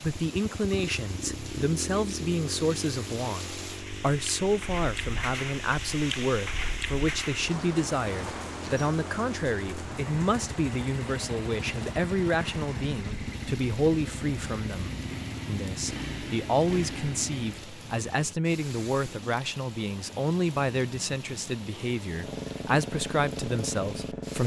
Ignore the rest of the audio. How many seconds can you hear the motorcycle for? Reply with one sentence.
The motorcycle can be heard for 20 seconds in total.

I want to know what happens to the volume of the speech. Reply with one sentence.
The volume of the speech stays about the same.